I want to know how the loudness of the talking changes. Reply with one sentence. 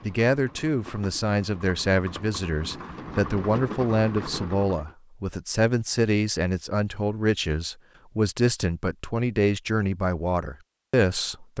The volume of the talking stays about the same.